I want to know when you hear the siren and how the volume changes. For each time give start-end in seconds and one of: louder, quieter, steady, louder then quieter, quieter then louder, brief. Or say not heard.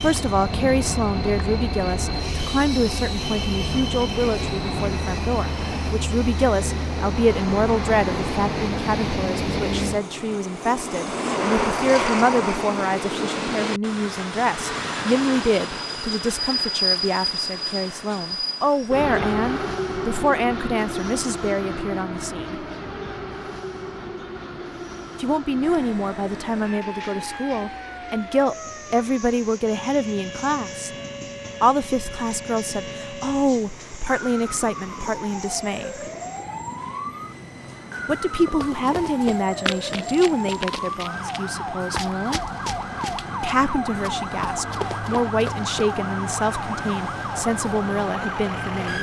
25.6-48.9 louder.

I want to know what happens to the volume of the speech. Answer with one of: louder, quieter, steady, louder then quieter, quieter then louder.
steady.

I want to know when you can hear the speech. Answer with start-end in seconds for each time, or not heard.
0.0-22.6, 25.2-30.9, 31.6-36.0, 38.0-42.4, 43.4-48.9.